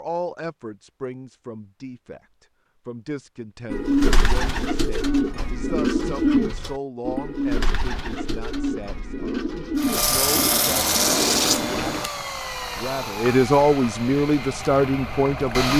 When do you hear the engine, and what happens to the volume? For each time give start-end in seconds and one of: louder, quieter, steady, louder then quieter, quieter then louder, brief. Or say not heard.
9.8-15.7 quieter.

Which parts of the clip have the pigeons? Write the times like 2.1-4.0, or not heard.
3.7-12.1.